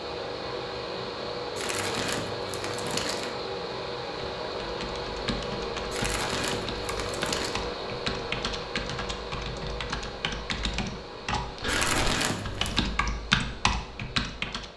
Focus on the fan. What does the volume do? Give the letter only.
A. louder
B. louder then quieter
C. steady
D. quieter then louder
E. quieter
E.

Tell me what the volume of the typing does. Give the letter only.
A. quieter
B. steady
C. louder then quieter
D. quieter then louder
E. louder
E.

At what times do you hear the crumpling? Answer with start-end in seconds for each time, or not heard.
1.6-3.3, 5.9-7.6, 11.7-12.8.